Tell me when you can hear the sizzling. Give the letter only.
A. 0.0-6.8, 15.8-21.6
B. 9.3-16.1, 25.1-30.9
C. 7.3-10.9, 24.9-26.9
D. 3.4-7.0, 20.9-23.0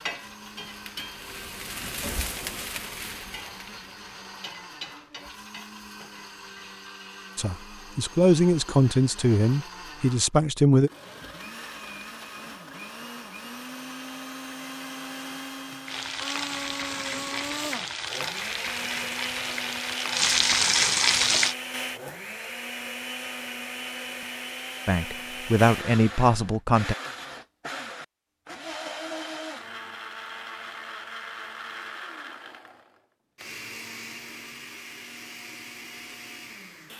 A.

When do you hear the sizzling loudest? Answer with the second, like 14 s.
21 s.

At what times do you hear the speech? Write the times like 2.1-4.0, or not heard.
7.3-10.9, 24.9-26.9.